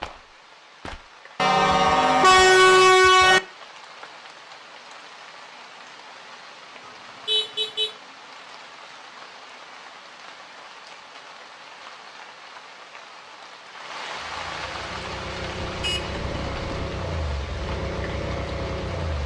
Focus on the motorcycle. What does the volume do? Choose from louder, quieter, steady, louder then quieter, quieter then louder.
louder.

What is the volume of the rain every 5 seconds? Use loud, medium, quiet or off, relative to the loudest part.
medium, medium, loud, loud.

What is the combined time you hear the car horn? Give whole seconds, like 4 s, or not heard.
4 s.